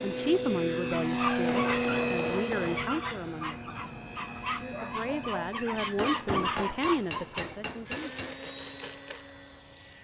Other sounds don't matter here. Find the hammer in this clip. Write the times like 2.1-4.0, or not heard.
1.4-2.9, 6.0-8.5.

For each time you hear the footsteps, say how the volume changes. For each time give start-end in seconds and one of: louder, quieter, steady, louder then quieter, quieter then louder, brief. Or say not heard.
not heard.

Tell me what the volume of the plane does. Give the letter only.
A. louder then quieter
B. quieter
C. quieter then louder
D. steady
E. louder
C.